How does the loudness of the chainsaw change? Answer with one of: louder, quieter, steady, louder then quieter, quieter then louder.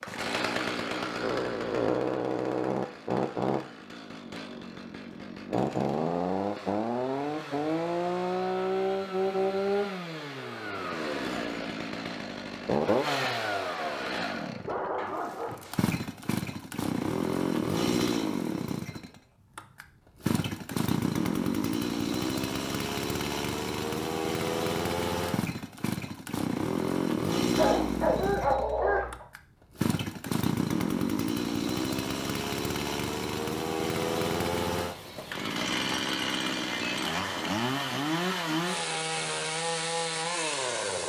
steady.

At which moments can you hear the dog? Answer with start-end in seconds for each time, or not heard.
14.7-15.7, 27.6-29.2.